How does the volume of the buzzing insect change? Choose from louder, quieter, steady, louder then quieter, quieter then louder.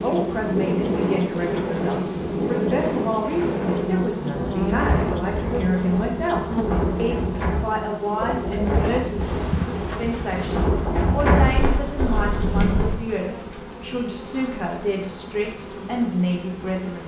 quieter.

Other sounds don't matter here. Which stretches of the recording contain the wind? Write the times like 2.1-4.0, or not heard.
0.0-13.0.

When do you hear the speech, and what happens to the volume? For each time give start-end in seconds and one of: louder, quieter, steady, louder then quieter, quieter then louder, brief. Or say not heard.
0.0-17.0 steady.